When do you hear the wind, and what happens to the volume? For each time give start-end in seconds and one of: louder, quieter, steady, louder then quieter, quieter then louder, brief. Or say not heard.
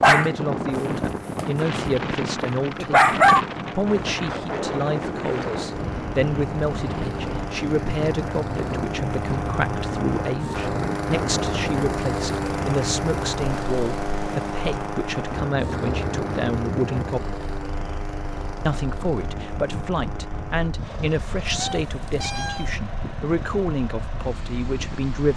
0.0-25.1 quieter.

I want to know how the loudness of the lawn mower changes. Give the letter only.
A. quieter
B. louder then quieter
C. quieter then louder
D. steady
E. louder
B.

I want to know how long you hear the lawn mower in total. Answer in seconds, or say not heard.
25 s.